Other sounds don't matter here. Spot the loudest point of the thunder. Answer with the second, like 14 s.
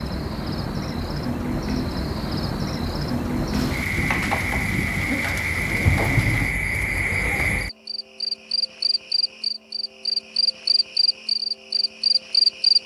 6 s.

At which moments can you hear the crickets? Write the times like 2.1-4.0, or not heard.
0.0-12.8.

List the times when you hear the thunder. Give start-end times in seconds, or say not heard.
3.5-6.6.